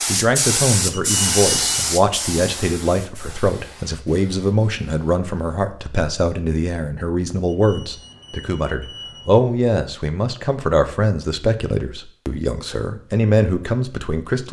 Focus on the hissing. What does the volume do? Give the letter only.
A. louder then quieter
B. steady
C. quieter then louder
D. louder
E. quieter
E.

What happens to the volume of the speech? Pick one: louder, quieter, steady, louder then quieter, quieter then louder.
steady.